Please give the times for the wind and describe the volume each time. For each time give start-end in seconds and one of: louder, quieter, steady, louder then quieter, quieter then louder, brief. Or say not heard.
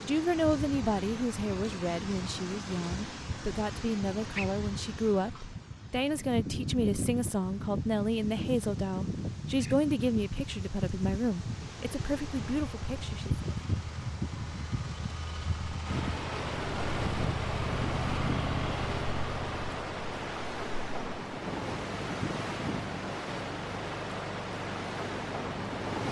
0.0-26.0 steady.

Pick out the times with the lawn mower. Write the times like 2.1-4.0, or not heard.
12.3-26.0.